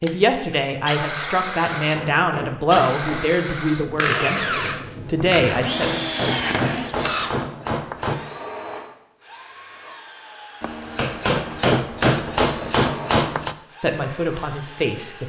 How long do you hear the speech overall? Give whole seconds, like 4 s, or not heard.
8 s.